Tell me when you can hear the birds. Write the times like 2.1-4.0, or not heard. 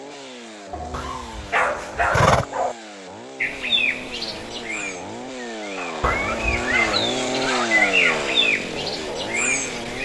3.4-10.0.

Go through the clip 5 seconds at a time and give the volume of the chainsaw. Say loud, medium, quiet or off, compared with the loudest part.
medium, loud.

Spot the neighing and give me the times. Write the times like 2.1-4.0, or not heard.
0.9-2.5, 6.0-7.0.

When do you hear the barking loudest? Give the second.
2 s.